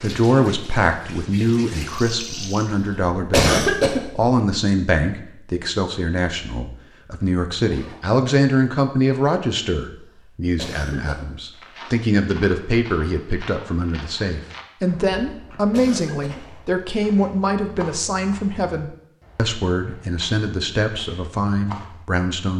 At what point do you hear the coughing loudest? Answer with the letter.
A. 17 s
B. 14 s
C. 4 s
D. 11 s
C.